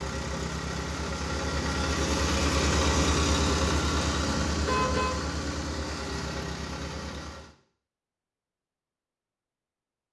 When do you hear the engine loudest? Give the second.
3 s.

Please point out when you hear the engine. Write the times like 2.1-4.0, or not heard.
0.0-7.5.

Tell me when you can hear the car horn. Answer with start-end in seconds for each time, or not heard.
4.2-5.2.